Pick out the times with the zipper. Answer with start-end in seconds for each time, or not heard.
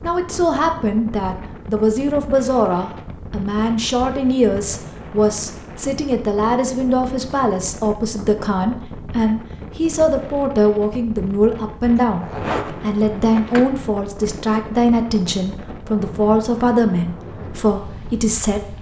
12.0-13.7.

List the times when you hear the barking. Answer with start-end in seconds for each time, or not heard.
not heard.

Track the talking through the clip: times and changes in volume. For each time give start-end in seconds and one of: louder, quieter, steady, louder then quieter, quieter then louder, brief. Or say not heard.
0.0-18.7 steady.